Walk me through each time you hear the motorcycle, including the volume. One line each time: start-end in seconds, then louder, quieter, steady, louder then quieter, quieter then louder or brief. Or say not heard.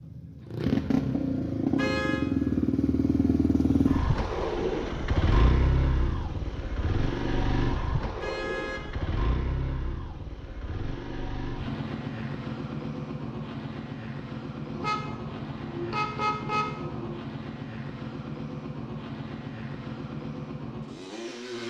0.0-21.6 quieter.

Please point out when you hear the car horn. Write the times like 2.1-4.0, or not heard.
1.8-2.2, 8.2-8.8, 14.7-17.2.